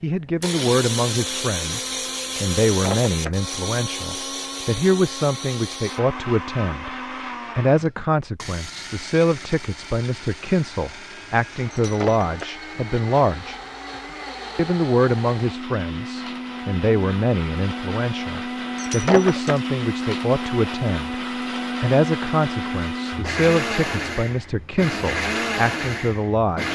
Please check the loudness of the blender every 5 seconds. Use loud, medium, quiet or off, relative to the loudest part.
loud, medium, medium, loud, loud, loud.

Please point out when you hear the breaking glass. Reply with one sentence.
The breaking glass can be heard from 2.6 to 3.4 s, from 11.7 to 12.6 s and from 18.8 to 19.6 s.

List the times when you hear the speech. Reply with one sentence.
The speech can be heard from 0.0 to 7.0 s, from 7.5 to 13.6 s, from 14.6 to 21.2 s and from 21.8 to 26.6 s.